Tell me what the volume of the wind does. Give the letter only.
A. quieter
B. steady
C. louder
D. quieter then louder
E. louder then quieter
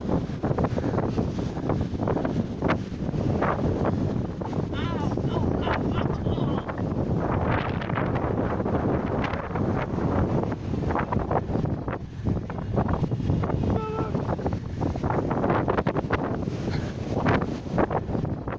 B.